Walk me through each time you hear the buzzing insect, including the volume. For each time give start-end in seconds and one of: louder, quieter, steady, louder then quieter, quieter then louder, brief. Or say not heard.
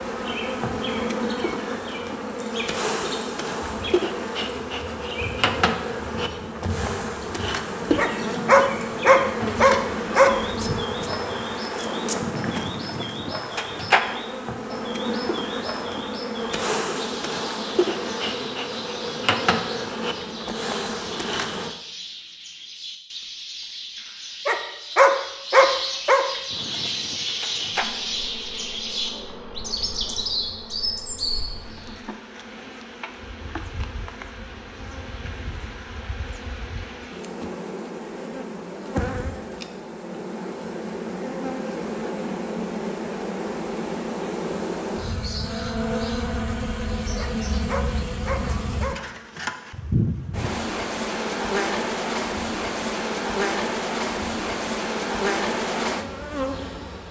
0.0-21.8 steady
26.5-57.0 louder.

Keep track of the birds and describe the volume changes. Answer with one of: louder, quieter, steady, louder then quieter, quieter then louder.
louder.